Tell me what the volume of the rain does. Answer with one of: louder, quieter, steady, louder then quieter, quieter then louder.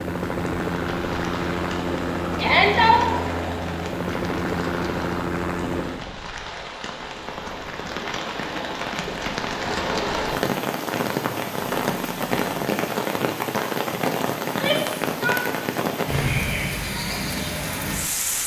louder.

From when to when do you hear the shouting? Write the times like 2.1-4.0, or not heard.
2.4-3.1, 14.4-15.4.